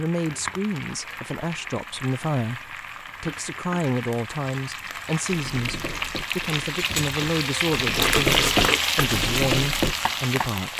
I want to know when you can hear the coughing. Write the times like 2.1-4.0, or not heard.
not heard.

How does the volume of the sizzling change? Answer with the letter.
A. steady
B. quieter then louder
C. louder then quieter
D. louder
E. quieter
D.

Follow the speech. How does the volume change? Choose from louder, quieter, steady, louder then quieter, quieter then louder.
steady.